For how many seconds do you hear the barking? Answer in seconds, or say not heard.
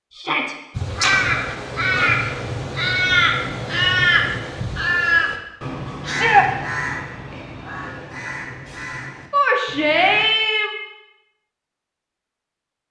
not heard.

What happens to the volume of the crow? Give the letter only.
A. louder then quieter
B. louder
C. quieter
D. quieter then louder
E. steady
C.